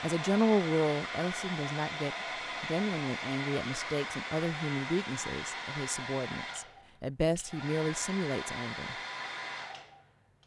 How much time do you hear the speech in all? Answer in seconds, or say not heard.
9 s.